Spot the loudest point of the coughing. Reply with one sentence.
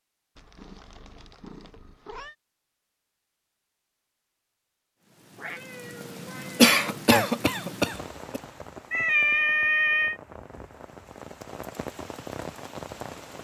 The volume of the coughing peaks at 7 seconds.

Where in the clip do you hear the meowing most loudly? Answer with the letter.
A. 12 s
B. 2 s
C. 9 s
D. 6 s
C.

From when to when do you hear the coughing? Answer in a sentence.
You can hear the coughing from 6.5 to 8.4 s.